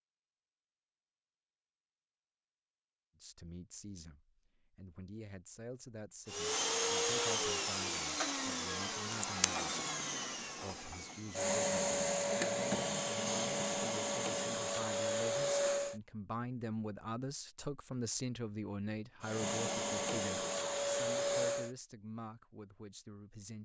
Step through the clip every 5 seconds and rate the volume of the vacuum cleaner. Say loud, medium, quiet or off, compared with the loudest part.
off, loud, loud, loud, loud.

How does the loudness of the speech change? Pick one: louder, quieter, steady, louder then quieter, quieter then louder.
louder then quieter.